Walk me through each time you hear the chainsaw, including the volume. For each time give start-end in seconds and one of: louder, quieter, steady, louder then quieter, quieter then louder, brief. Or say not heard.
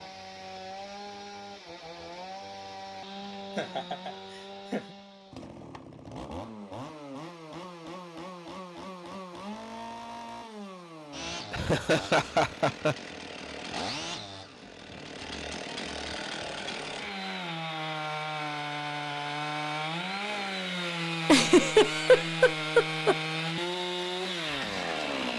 0.0-25.3 louder.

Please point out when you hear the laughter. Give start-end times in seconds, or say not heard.
3.5-5.0, 11.5-12.9, 21.2-23.1.